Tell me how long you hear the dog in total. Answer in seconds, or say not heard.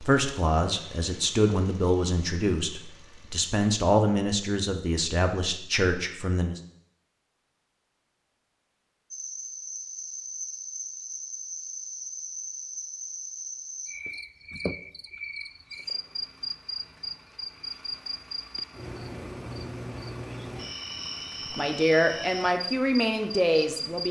not heard.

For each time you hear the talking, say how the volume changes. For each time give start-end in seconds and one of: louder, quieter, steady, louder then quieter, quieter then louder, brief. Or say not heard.
0.0-6.6 steady
21.6-24.0 brief.